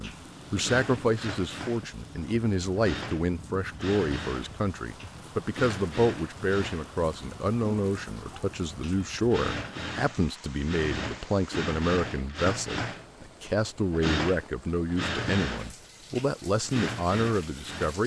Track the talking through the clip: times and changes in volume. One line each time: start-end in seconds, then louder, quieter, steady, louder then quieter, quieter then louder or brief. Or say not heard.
0.0-18.0 steady.